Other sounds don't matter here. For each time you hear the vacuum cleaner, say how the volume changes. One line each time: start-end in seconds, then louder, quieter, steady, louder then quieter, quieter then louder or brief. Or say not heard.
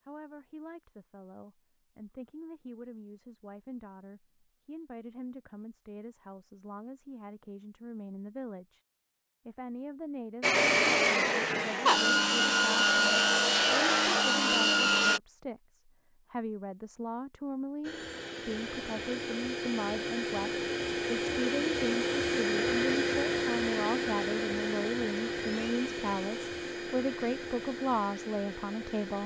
10.4-15.2 steady
17.8-29.2 louder then quieter.